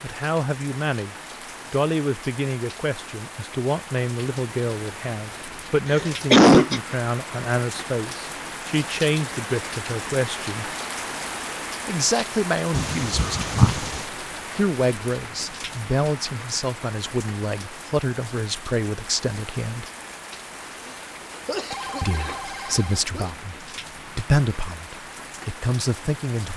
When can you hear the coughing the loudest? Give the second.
6 s.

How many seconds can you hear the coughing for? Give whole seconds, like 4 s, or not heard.
5 s.